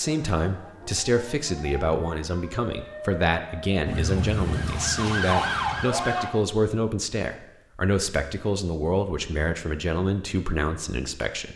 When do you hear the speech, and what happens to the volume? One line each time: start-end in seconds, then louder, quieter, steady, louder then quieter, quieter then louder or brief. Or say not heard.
0.0-11.5 steady.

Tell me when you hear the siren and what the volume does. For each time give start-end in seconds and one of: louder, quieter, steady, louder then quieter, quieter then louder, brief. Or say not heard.
0.0-6.3 louder.